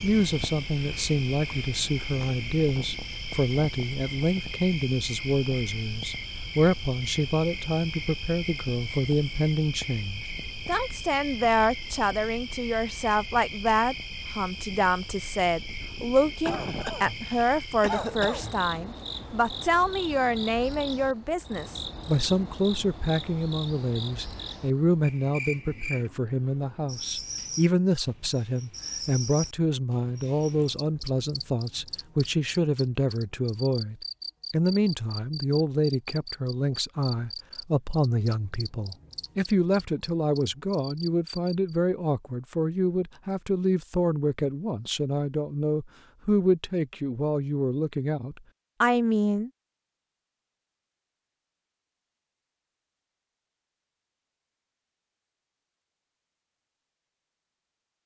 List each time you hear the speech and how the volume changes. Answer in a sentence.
The speech can be heard from 0.0 to 49.5 s, at a steady volume.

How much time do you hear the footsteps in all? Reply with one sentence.
The footsteps can't be heard in this clip.